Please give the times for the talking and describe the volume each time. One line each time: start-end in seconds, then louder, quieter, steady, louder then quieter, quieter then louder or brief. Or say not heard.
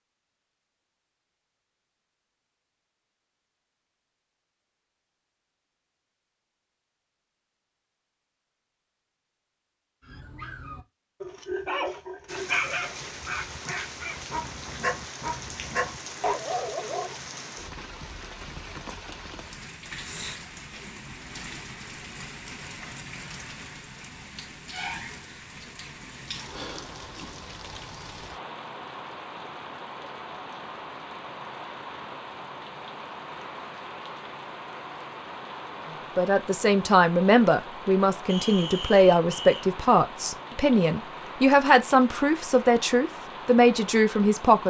36.1-44.6 steady.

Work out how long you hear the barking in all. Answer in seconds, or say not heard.
7 s.